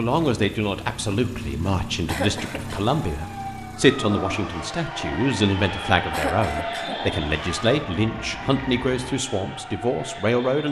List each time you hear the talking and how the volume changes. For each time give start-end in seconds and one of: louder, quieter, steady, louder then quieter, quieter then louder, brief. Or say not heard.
0.0-10.6 steady.